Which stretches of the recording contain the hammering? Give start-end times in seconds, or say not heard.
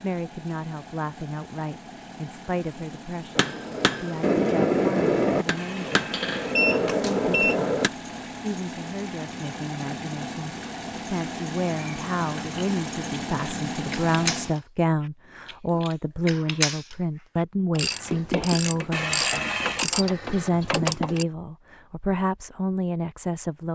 3.4-7.9.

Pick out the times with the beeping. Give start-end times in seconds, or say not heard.
5.5-7.5, 18.9-19.9.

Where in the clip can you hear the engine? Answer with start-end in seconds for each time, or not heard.
0.0-14.6.